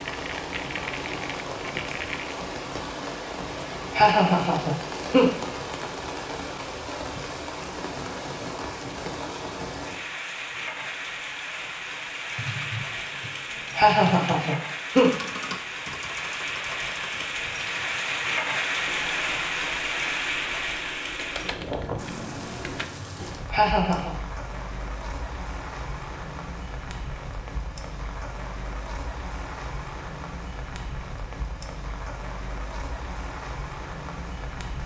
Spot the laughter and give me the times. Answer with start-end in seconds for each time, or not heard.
3.9-5.3, 13.8-15.1, 23.5-24.1.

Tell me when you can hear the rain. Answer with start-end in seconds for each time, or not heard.
0.0-34.8.